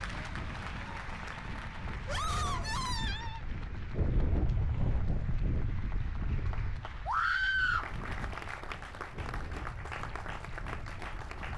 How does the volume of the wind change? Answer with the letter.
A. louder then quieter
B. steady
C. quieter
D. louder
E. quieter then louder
A.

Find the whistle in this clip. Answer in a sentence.
The whistle can't be heard in this clip.